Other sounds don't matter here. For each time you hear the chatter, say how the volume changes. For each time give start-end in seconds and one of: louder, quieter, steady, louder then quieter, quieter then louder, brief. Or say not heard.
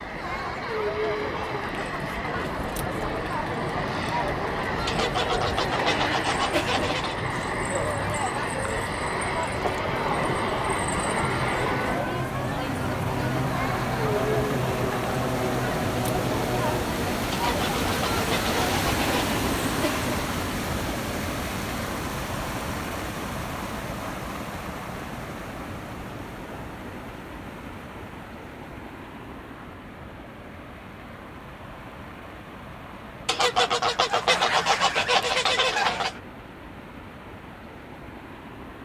0.0-20.2 steady.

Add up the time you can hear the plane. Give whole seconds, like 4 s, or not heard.
17 s.